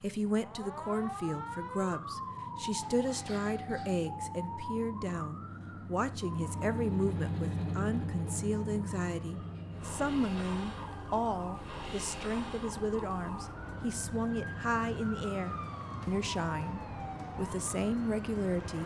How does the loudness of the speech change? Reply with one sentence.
The volume of the speech stays about the same.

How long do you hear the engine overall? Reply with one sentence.
You can hear the engine for 19 seconds altogether.